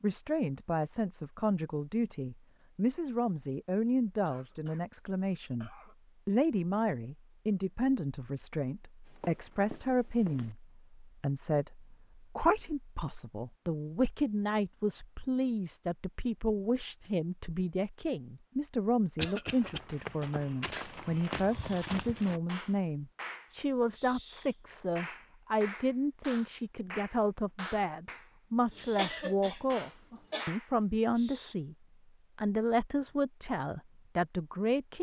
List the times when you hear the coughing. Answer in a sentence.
The coughing can be heard from 4.2 to 6.0 s, from 19.1 to 19.8 s and from 28.7 to 30.5 s.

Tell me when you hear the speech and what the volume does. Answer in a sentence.
The speech can be heard from 0.0 to 31.8 s, at a steady volume; and briefly from 32.4 to 34.9 s.